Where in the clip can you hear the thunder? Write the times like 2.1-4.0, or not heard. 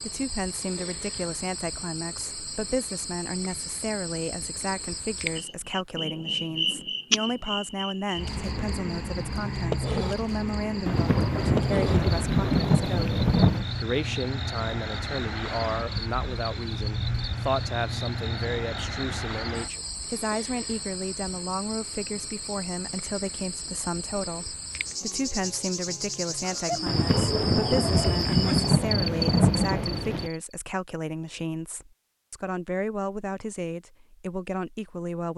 10.8-13.7, 26.9-30.3.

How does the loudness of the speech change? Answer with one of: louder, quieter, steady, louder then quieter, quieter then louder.
steady.